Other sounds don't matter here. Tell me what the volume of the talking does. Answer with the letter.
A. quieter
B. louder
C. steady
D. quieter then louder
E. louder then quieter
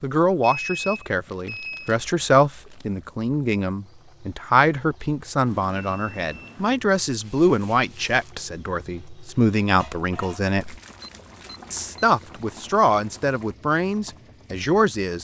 C.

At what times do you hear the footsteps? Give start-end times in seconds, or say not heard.
not heard.